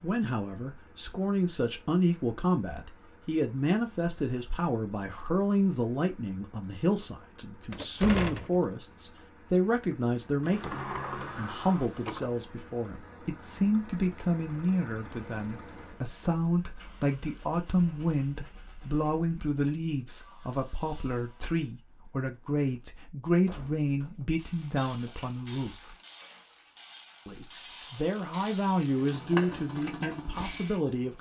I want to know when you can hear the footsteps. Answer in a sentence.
You can't hear the footsteps here.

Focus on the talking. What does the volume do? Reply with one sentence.
The loudness of the talking stays about the same.